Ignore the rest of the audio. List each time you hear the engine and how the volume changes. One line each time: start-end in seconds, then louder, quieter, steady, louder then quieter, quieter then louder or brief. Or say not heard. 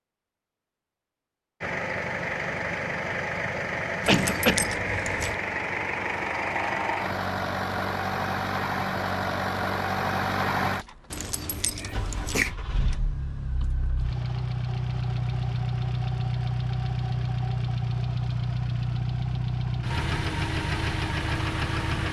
1.6-22.0 steady.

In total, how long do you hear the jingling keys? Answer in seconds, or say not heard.
3 s.